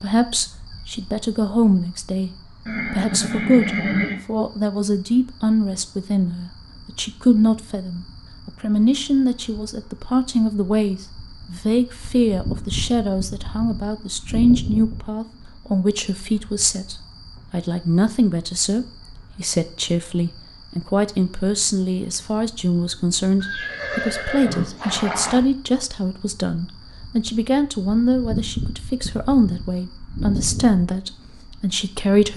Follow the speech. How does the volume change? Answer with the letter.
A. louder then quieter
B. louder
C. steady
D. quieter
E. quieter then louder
C.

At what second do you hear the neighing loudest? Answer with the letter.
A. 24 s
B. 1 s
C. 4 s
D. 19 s
C.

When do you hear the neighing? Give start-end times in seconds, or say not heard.
2.6-4.2, 23.4-25.4.